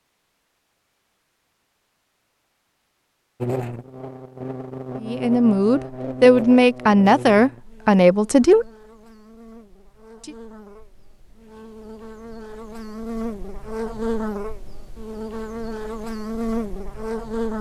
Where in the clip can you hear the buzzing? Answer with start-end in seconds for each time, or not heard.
3.4-17.5.